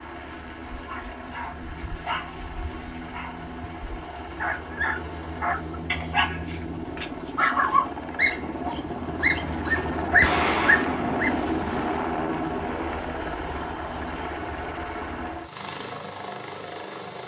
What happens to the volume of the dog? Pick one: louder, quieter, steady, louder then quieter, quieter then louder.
louder.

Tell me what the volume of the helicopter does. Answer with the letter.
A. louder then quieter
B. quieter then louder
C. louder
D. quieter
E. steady
A.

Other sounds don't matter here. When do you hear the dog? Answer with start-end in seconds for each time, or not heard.
0.7-11.3.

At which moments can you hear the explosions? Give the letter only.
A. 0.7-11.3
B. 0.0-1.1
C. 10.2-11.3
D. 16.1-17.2
C.